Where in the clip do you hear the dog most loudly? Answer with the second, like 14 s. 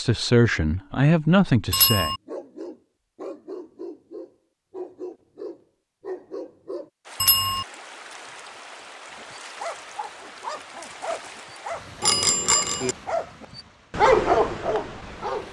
14 s.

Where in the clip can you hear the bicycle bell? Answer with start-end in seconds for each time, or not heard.
1.7-2.2, 7.2-7.7, 12.0-12.9.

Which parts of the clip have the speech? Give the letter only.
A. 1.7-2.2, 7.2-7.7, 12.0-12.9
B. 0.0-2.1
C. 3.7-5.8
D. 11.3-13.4
B.